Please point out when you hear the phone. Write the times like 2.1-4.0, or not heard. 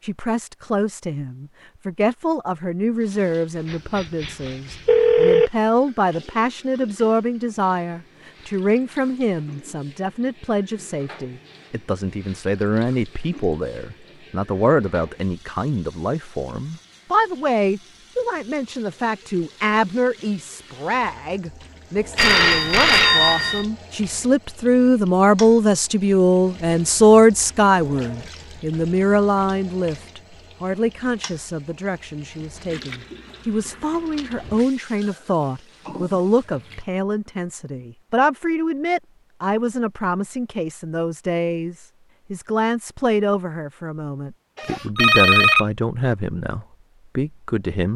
3.7-5.5, 22.1-23.6, 44.5-45.6.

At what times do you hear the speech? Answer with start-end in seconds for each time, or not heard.
0.0-47.9.